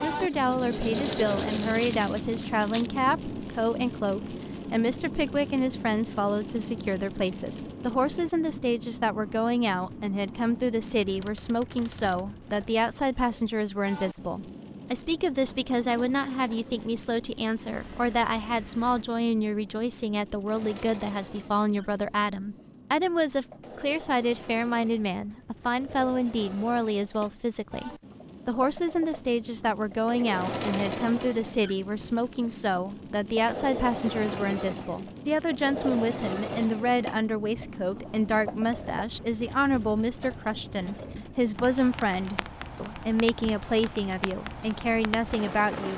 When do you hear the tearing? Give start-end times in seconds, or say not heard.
0.9-2.9.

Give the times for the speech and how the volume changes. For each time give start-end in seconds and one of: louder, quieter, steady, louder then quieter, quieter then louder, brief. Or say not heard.
0.0-45.9 steady.